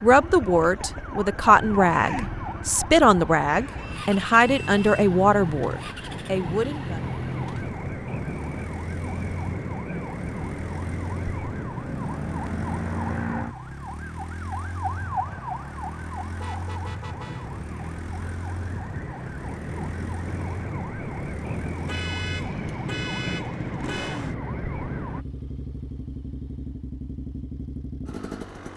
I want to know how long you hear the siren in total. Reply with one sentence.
The siren can be heard for 25 seconds in total.